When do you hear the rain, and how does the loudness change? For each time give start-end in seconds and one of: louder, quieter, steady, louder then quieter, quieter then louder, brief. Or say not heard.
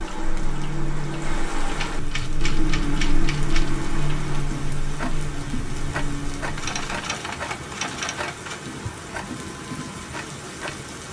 0.0-11.0 steady.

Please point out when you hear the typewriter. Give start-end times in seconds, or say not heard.
1.8-3.8, 6.5-8.6.